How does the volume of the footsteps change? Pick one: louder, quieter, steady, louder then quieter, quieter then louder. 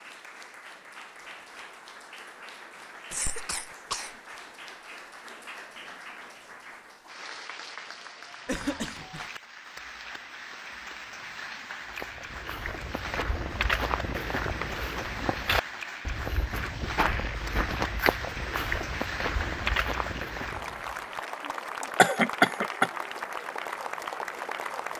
steady.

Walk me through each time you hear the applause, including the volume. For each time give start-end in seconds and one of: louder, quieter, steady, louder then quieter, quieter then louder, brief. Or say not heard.
0.0-24.9 louder.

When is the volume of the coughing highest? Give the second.
22 s.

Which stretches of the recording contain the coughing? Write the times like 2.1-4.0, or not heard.
3.1-4.2, 8.4-9.3, 21.8-22.9.